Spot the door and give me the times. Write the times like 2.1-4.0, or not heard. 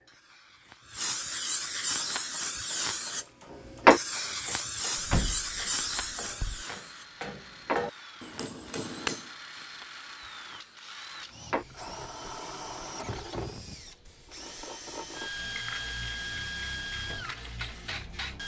5.0-6.7.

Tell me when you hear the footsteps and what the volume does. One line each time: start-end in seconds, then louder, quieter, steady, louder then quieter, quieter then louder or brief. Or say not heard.
not heard.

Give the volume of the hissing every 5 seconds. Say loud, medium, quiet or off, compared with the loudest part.
loud, medium, quiet, quiet.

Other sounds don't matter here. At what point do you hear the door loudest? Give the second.
5 s.